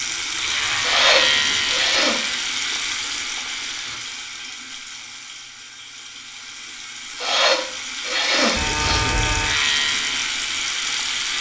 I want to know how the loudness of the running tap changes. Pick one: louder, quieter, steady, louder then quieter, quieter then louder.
quieter then louder.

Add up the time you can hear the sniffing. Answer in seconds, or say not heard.
3 s.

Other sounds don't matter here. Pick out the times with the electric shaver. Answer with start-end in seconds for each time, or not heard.
0.2-4.0, 8.5-11.3.